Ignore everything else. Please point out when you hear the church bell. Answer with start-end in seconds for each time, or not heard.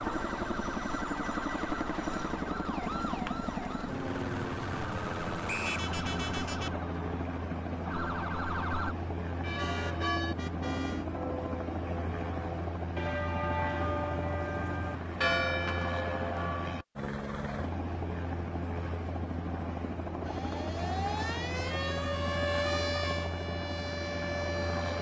9.3-16.8.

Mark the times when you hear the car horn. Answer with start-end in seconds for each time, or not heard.
5.6-6.8, 9.6-11.1, 21.5-23.1.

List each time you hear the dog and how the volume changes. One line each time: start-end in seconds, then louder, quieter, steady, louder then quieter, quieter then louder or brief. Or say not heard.
not heard.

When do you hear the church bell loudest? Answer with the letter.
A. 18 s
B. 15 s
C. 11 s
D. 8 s
B.